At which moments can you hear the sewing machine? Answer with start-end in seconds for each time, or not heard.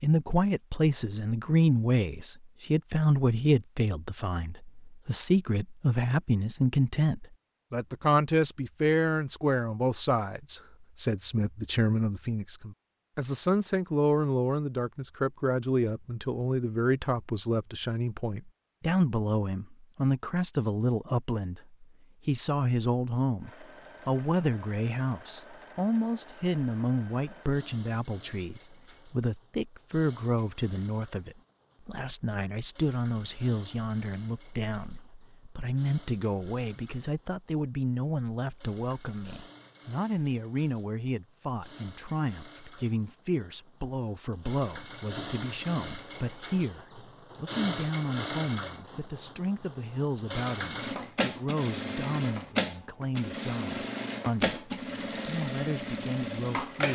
23.4-56.8.